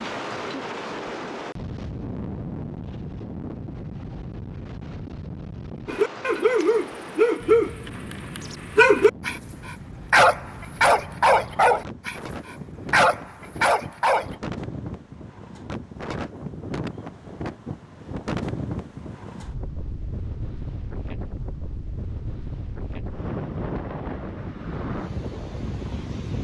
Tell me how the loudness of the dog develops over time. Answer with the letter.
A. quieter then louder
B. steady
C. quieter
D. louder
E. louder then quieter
B.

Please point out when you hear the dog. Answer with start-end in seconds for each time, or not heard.
5.8-14.3.